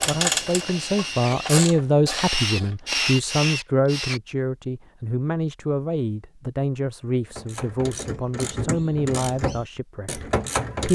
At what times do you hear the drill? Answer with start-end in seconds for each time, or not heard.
0.0-4.2.